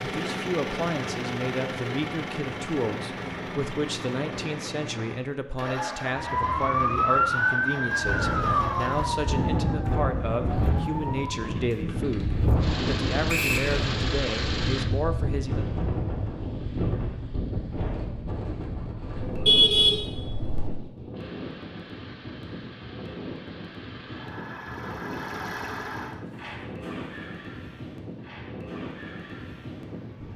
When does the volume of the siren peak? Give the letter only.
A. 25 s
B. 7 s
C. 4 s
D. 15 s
B.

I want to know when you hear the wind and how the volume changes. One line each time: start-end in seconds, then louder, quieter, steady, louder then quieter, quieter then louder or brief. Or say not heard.
8.0-30.3 quieter.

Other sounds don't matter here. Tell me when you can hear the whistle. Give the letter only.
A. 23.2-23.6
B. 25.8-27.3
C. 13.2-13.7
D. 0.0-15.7
C.